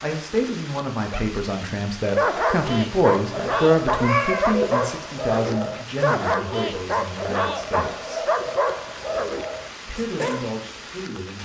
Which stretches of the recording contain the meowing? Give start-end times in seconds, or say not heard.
3.4-4.7.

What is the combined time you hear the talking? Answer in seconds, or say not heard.
10 s.